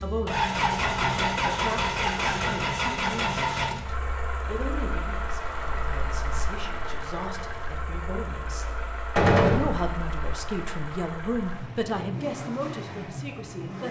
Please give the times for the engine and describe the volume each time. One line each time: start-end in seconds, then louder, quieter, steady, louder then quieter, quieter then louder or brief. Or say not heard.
0.0-13.8 quieter.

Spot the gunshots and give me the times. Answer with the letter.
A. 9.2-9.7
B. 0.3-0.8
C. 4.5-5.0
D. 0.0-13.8
A.